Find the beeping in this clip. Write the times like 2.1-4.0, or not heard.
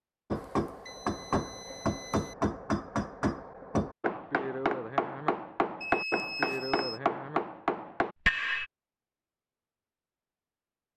0.3-2.4, 5.8-7.0.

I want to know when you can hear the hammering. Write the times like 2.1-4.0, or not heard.
0.3-8.7.